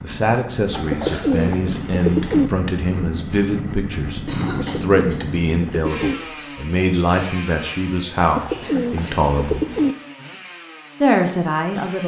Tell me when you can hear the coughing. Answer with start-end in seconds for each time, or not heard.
1.0-1.5, 4.2-5.8, 8.6-9.2.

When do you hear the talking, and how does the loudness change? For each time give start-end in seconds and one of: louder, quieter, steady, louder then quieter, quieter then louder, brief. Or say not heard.
0.0-9.7 steady
11.0-12.0 brief.